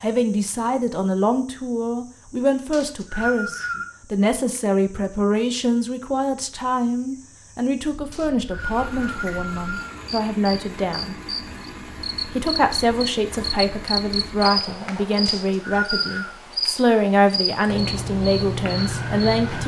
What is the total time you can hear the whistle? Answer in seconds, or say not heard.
4 s.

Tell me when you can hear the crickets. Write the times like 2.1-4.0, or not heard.
0.0-19.6.